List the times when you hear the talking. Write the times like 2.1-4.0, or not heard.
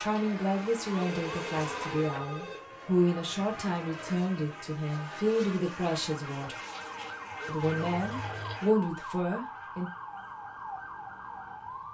0.0-6.5, 7.5-9.9.